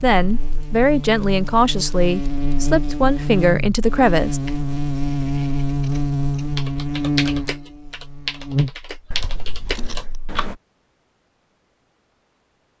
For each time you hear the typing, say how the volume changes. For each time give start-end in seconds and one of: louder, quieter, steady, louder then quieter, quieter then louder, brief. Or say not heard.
6.5-10.6 quieter then louder.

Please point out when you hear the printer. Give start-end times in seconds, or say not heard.
not heard.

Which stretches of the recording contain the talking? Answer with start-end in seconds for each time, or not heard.
0.0-4.4.